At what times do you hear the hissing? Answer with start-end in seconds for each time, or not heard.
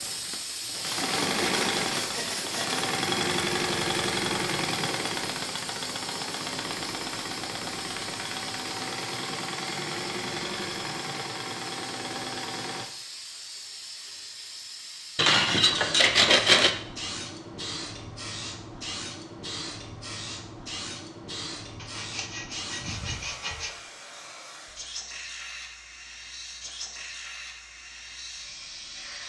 0.0-29.2.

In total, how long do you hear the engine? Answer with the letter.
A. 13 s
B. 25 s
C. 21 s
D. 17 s
A.